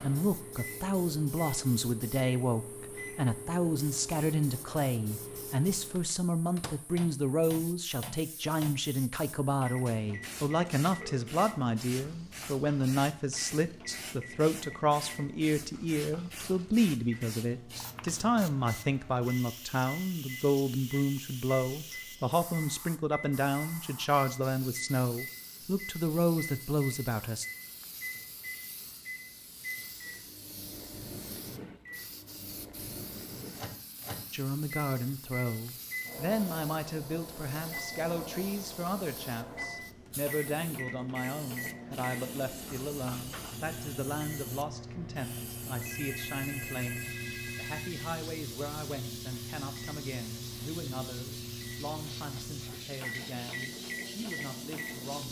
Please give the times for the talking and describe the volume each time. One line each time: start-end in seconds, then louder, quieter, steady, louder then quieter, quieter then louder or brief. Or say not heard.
0.0-27.4 steady
34.3-55.2 quieter.